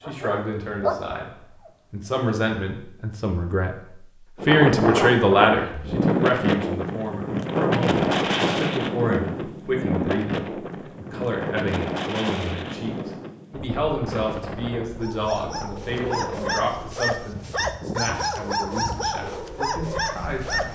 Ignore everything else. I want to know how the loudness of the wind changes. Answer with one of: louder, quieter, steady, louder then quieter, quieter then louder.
quieter.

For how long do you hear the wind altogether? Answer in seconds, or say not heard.
16 s.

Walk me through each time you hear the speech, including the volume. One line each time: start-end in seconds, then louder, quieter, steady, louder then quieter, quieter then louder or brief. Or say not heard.
0.1-1.3 brief
1.9-3.8 brief
4.5-20.6 quieter.